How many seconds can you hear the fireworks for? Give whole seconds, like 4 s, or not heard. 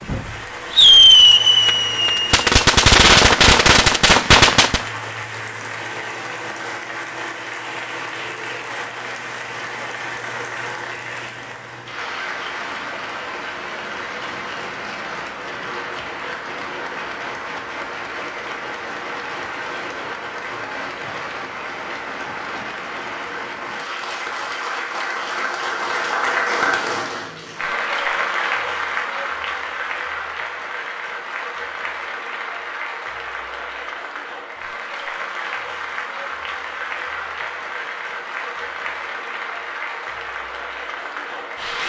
5 s.